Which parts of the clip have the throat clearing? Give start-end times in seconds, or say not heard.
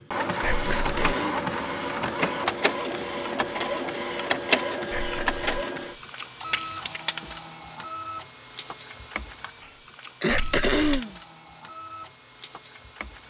0.6-1.4, 10.2-11.2.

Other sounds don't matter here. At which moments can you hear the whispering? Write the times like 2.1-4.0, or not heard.
0.4-1.1, 4.9-5.4, 10.2-11.0.